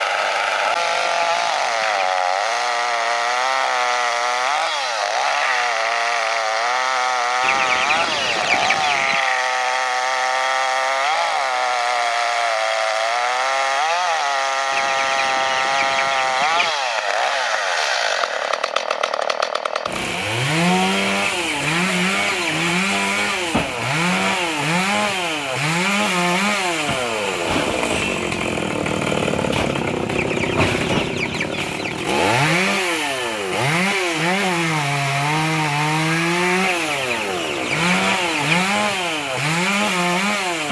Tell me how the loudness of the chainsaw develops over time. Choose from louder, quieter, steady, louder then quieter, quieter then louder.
steady.